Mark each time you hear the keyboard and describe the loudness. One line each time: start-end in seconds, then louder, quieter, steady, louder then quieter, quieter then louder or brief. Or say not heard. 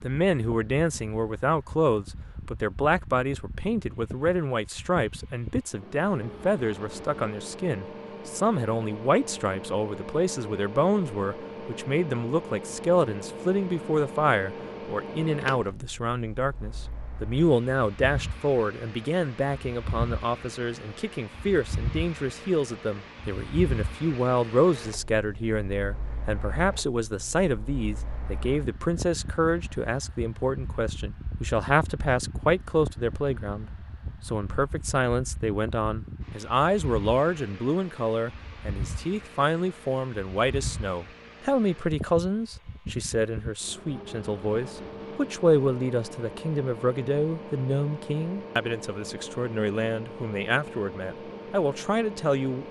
not heard.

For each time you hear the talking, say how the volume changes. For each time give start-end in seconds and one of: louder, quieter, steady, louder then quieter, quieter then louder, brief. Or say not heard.
0.0-52.6 steady.